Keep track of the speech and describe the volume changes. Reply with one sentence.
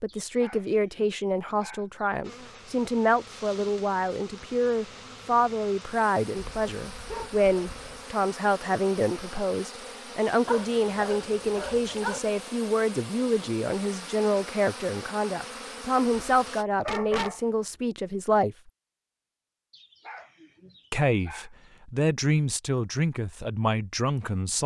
The volume of the speech stays about the same.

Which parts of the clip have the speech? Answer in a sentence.
The speech can be heard from 0.0 to 18.6 s and from 20.9 to 24.6 s.